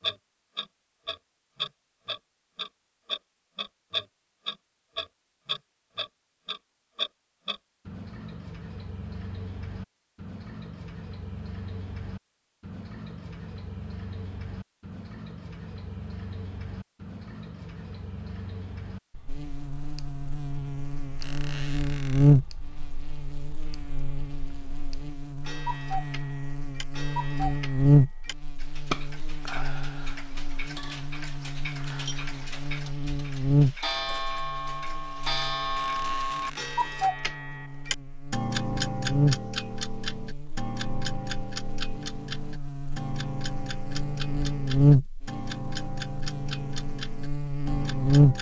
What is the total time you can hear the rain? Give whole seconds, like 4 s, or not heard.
not heard.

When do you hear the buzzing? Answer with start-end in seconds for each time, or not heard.
19.2-48.3.